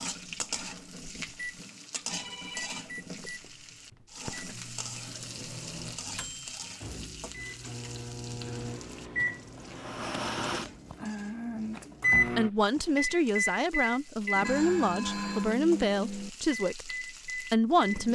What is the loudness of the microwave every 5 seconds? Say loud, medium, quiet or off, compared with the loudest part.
quiet, medium, loud, medium.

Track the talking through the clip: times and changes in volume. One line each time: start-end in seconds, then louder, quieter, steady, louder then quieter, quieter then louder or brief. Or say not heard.
12.3-18.0 steady.